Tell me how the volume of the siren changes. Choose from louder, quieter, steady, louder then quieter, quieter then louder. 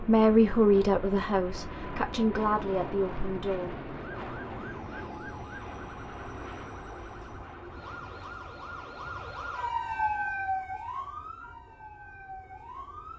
louder then quieter.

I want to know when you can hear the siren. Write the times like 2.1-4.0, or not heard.
4.2-13.1.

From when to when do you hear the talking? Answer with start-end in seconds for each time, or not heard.
0.0-3.8.